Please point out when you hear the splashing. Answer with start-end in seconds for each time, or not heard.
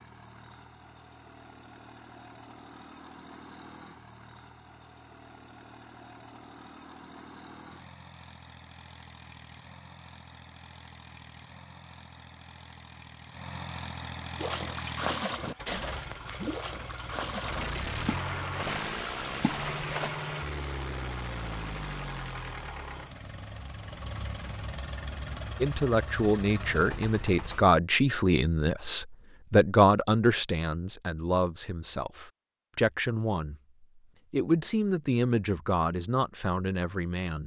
14.3-20.1.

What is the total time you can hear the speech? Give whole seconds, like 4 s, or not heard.
11 s.